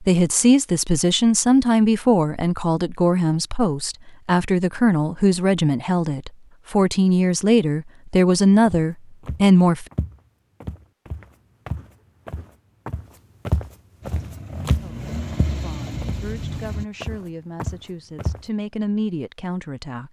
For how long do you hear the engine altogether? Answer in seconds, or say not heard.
3 s.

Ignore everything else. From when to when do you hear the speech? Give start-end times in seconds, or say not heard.
0.0-9.8, 14.7-20.0.